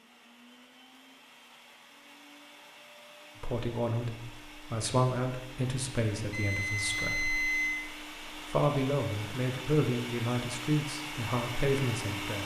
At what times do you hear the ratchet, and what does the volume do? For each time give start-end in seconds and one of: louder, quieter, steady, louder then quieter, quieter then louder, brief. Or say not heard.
not heard.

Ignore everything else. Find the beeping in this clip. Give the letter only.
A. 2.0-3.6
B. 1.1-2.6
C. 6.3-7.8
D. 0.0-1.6
C.